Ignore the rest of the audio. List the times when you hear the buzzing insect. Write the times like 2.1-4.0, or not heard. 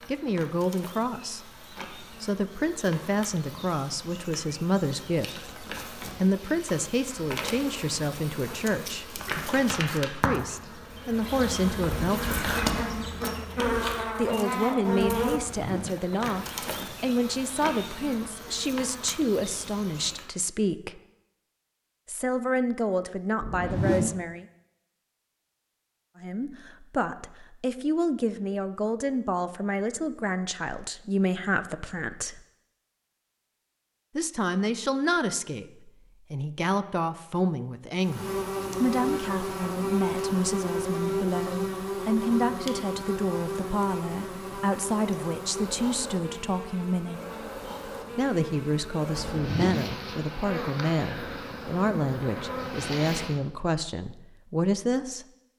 0.0-20.3, 38.0-53.4.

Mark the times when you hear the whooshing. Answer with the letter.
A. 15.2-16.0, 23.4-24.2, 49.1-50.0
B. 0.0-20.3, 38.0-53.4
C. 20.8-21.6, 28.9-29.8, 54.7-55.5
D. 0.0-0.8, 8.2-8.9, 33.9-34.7
A.